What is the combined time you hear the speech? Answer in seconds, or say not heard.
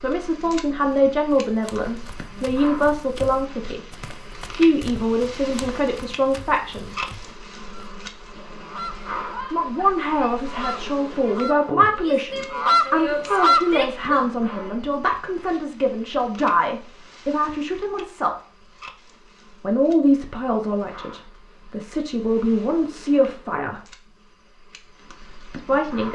20 s.